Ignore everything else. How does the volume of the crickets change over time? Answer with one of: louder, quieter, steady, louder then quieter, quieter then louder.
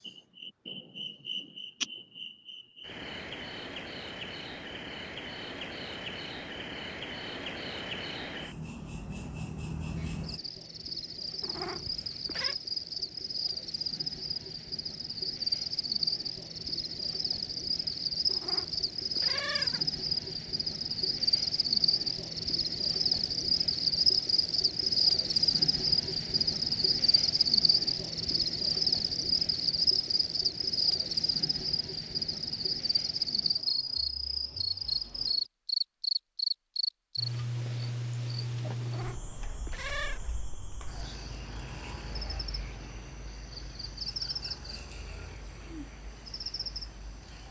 louder then quieter.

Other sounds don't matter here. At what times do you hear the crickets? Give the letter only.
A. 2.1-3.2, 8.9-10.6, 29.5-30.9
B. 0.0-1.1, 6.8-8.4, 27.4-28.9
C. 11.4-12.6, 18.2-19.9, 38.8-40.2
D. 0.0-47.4
D.